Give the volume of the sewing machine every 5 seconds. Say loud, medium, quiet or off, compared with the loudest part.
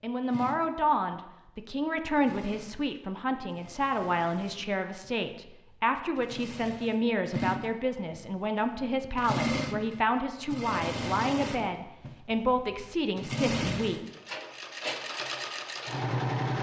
quiet, loud, loud, loud.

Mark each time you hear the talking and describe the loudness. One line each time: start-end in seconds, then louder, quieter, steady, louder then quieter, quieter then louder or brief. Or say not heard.
0.0-14.0 steady.